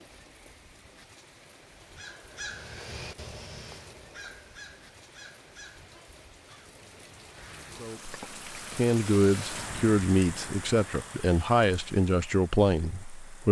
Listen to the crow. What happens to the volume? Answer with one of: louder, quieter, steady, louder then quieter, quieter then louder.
quieter.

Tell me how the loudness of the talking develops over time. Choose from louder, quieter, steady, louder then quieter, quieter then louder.
steady.